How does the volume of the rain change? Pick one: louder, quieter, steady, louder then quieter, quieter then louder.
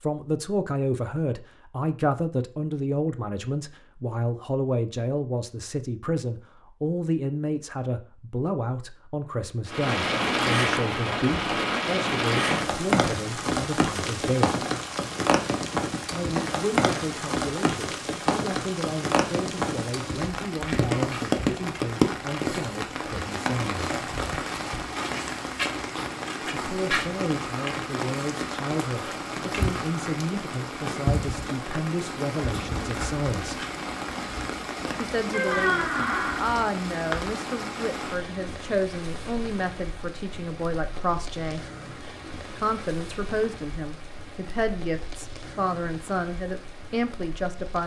quieter.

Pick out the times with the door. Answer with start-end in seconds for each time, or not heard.
35.3-36.5.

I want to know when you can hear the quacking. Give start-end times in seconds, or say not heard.
not heard.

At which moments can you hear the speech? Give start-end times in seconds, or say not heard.
0.0-14.6, 16.1-23.9, 26.5-33.6, 35.0-41.6, 42.5-47.8.